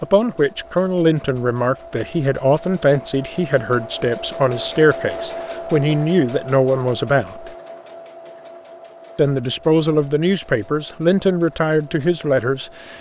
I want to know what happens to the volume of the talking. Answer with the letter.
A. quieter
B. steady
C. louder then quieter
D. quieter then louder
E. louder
B.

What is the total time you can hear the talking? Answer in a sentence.
The talking can be heard for 11 seconds in total.